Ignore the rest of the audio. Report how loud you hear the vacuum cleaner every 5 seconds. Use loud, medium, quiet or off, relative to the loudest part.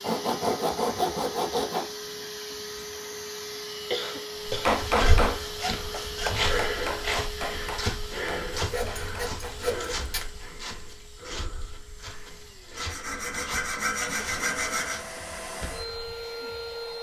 loud, loud, medium, loud.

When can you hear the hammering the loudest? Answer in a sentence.
The volume of the hammering peaks at 5 seconds.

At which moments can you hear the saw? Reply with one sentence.
You can hear the saw from 0.0 to 1.9 s, from 4.8 to 6.5 s, from 8.5 to 10.3 s and from 12.8 to 15.0 s.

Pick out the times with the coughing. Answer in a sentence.
The coughing can be heard from 3.9 to 4.8 s.